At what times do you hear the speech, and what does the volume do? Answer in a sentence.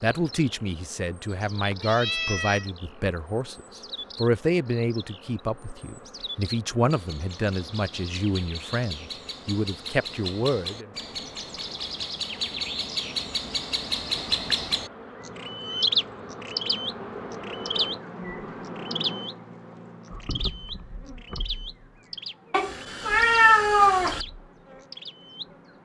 You can hear the speech from 0.0 to 10.9 s, at a steady volume.